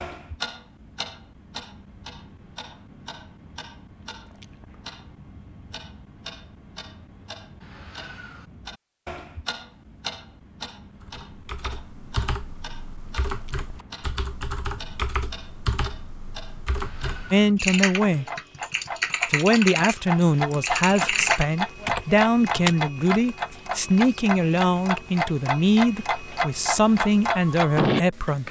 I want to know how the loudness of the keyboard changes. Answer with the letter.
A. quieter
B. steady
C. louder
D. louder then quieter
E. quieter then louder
C.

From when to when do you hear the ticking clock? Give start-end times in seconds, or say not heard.
0.0-28.4.